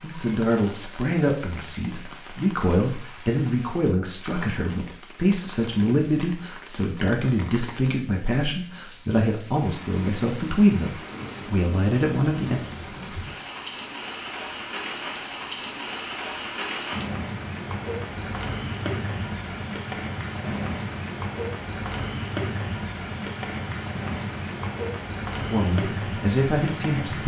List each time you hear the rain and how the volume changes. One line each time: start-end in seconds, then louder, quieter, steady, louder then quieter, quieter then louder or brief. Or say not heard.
0.0-27.2 louder.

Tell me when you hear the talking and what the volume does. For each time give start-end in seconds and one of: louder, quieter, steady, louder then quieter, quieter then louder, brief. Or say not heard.
0.0-12.6 steady
25.5-27.2 brief.